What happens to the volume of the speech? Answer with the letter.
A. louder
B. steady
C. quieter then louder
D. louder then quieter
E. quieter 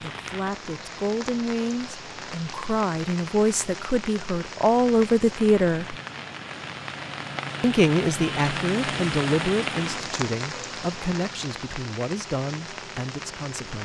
D.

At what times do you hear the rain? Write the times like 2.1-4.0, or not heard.
0.0-13.8.